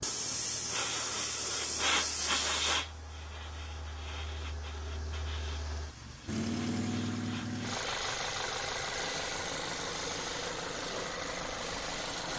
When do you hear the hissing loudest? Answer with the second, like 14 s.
2 s.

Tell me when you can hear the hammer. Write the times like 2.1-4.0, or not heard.
not heard.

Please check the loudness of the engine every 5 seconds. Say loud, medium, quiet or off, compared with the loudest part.
quiet, loud, loud.